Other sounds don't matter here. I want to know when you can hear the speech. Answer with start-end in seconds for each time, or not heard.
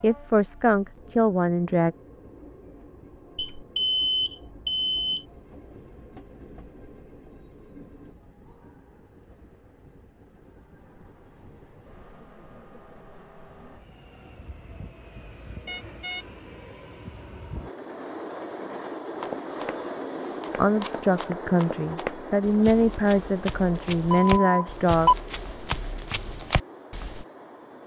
0.0-1.9, 20.6-25.1.